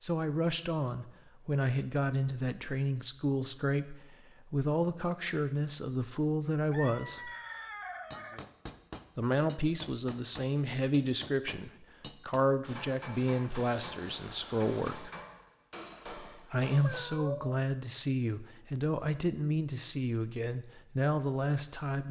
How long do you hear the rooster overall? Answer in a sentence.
You can hear the rooster for 2 seconds altogether.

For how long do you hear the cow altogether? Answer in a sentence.
You can't hear the cow here.